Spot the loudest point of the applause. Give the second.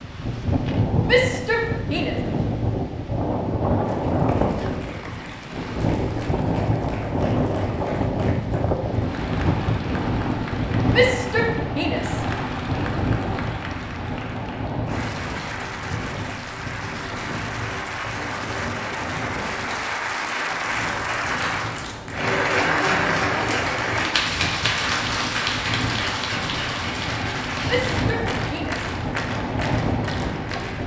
23 s.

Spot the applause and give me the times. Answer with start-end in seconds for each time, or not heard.
3.8-30.8.